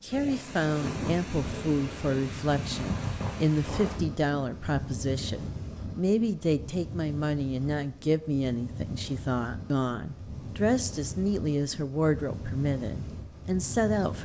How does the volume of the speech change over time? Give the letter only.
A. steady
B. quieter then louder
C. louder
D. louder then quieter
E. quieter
A.